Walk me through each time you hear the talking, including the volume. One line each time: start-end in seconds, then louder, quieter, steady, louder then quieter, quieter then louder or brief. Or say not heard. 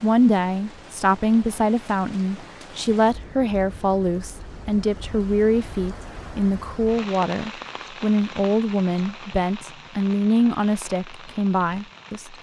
0.0-12.3 steady.